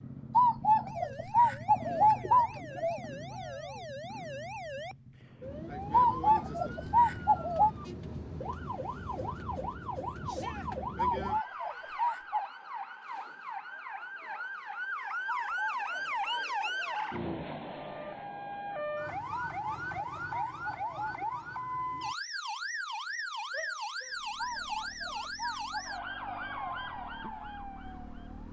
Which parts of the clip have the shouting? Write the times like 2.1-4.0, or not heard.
3.2-3.9, 10.2-10.7, 23.5-25.9.